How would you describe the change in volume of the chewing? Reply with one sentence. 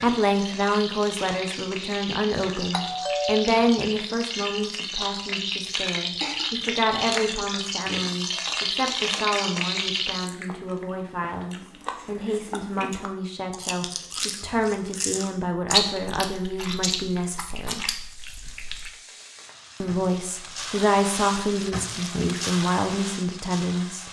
The volume of the chewing goes up, then down.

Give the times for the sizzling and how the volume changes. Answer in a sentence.
You can hear the sizzling from 0.0 to 10.3 s, getting louder; and from 17.9 to 24.0 s, getting louder.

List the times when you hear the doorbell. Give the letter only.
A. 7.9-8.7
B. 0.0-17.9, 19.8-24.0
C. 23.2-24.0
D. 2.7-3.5
D.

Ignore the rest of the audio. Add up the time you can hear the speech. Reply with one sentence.
The speech can be heard for 22 seconds in total.